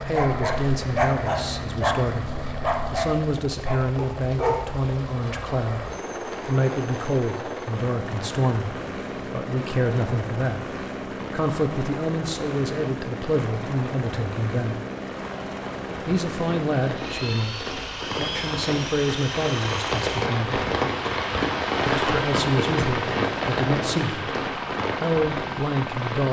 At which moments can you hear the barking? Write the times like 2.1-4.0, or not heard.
0.0-4.6.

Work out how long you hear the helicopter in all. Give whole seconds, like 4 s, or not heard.
26 s.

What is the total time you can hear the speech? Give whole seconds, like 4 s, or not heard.
23 s.